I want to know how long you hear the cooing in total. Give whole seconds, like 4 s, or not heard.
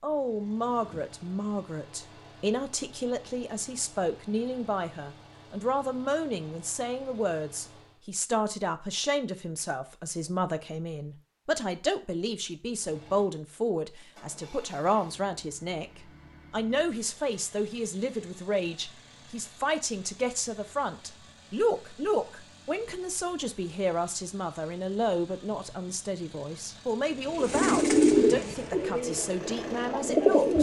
3 s.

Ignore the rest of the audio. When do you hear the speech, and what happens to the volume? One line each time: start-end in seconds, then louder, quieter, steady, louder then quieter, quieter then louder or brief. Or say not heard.
0.0-30.5 steady.